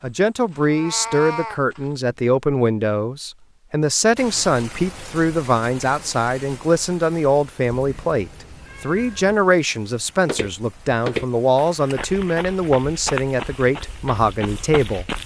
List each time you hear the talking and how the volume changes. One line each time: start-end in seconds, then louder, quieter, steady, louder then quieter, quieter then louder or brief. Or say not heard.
0.0-15.1 steady.